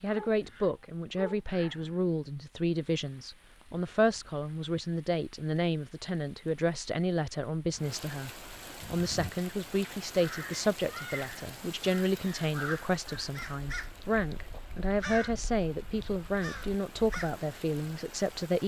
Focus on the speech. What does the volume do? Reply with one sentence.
The volume of the speech stays about the same.